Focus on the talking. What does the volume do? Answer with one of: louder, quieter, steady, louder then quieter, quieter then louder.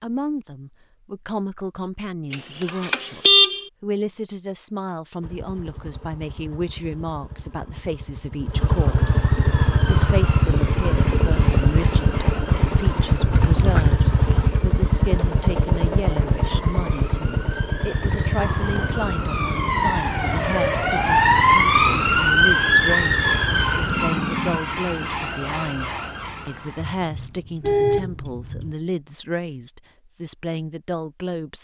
steady.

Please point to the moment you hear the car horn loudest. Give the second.
3 s.